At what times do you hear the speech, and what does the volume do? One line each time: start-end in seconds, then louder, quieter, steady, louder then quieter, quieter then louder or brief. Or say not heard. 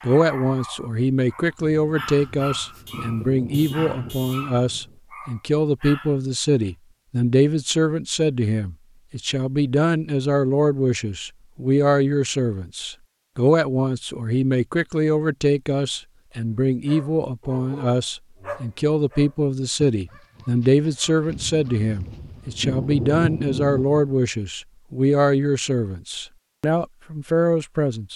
0.0-28.1 steady.